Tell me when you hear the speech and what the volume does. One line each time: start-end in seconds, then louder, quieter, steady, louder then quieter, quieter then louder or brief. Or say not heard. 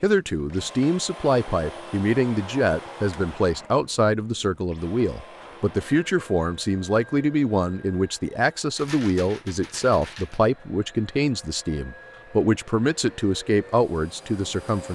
0.0-14.8 steady.